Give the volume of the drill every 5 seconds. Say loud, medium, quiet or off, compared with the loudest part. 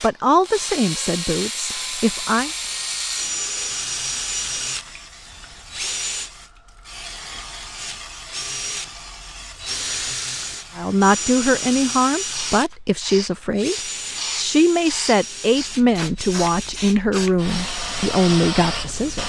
loud, loud, loud, medium.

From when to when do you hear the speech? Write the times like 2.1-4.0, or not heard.
0.0-2.5, 10.8-19.2.